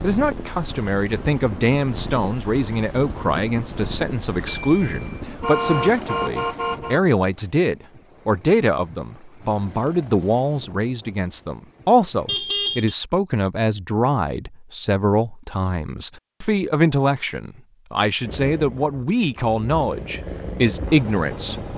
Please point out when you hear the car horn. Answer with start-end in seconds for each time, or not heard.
4.5-7.0, 12.2-12.9.